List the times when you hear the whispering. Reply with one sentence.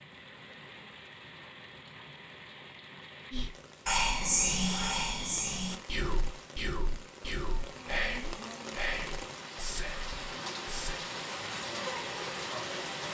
The whispering can be heard from 3.3 to 11.0 s.